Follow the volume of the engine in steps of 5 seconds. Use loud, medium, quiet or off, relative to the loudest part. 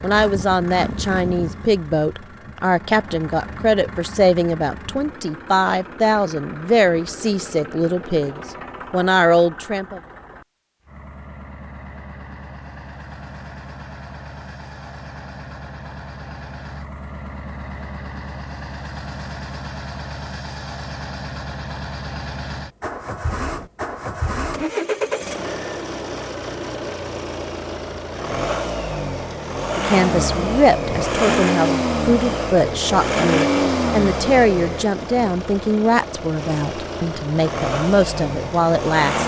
quiet, quiet, quiet, quiet, medium, medium, loud, medium.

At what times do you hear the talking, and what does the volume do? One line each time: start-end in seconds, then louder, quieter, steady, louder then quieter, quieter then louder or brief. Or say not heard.
0.0-10.0 steady
29.8-39.2 steady.